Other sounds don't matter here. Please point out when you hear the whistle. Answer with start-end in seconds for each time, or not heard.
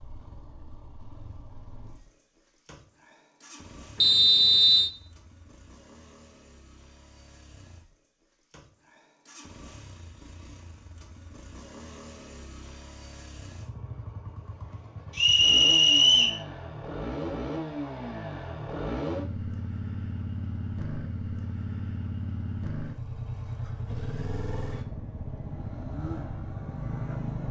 4.0-4.9, 15.2-16.4.